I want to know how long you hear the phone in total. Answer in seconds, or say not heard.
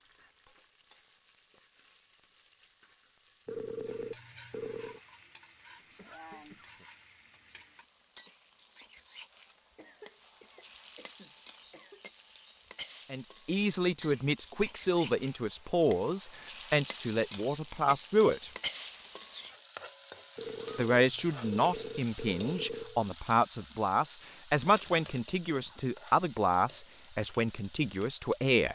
4 s.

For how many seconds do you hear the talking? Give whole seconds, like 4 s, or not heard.
13 s.